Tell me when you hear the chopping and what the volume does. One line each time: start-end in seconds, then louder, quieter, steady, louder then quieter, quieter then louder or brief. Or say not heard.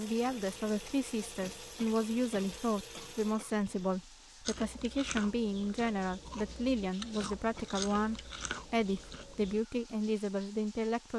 not heard.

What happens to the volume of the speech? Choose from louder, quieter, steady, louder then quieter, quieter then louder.
steady.